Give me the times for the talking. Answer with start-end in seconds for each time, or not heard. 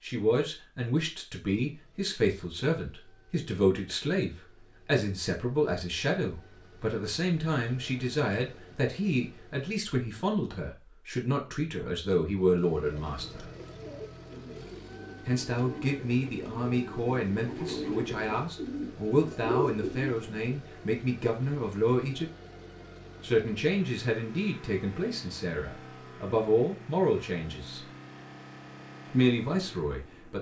0.0-13.5, 15.2-22.3, 23.2-27.9, 29.1-30.3.